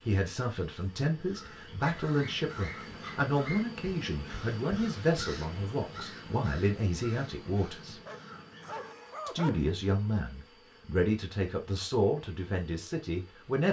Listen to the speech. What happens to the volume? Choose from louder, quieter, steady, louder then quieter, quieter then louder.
steady.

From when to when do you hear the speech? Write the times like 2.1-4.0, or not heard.
0.0-8.0, 9.2-13.6.